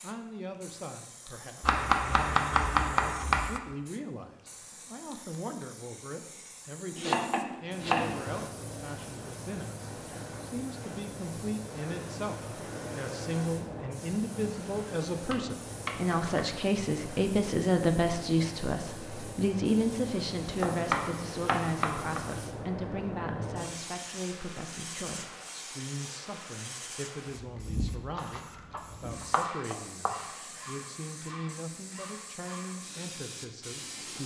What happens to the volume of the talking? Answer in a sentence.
The loudness of the talking goes up, then down.